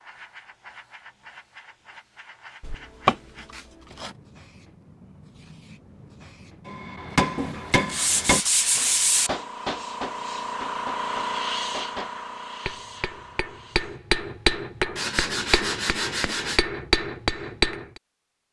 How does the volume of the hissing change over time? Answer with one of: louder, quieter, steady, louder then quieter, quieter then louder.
louder.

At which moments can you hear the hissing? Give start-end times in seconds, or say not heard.
0.0-14.0.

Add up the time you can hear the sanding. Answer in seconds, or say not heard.
5 s.